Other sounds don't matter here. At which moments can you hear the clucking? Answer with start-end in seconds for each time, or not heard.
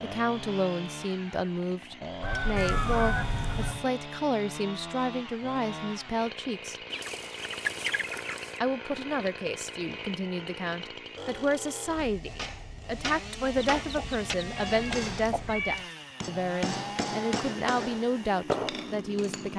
2.2-3.8, 6.9-8.6, 13.6-15.6.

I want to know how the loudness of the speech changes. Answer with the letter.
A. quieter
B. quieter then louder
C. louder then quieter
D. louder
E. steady
E.